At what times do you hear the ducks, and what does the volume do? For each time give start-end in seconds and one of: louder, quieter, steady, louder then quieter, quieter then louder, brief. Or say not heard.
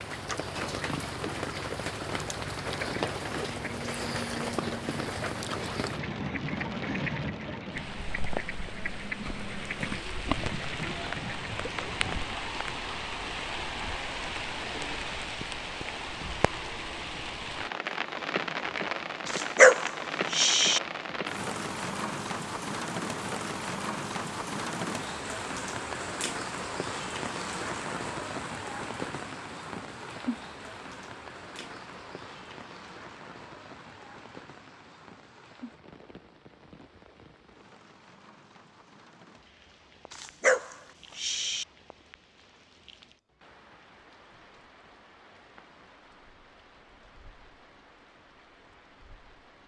2.8-12.4 steady.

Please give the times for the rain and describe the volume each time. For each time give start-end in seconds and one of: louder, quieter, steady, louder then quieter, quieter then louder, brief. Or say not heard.
0.0-49.6 quieter.